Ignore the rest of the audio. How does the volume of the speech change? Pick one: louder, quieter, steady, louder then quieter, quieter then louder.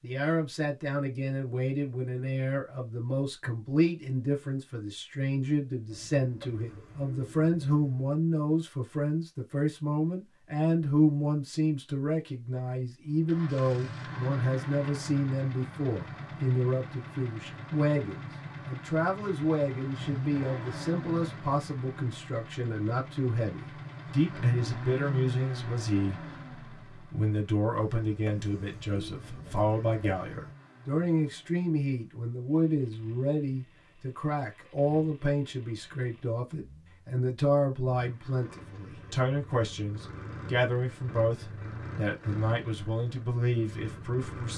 steady.